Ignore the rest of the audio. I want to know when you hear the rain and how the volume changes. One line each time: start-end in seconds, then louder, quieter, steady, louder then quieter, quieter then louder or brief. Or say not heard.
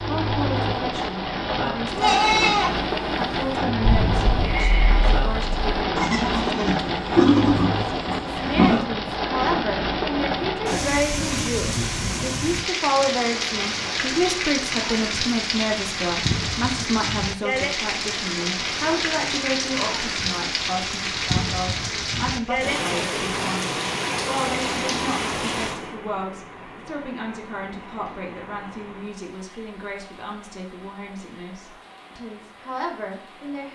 0.0-33.7 quieter.